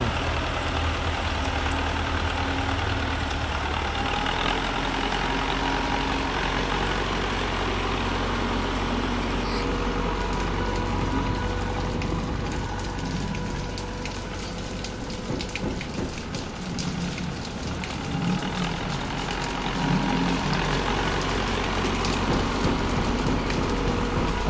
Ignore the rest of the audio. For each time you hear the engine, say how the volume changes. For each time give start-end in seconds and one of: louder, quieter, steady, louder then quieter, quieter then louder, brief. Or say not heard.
0.0-24.4 quieter then louder.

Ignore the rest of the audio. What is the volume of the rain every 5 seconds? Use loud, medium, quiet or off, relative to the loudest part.
medium, medium, medium, loud, loud.